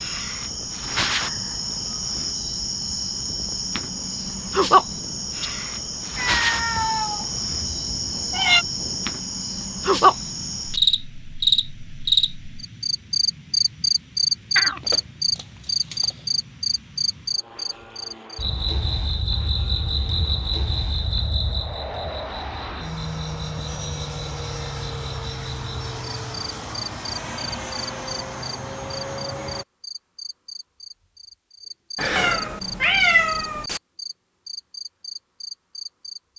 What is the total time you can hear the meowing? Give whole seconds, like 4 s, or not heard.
6 s.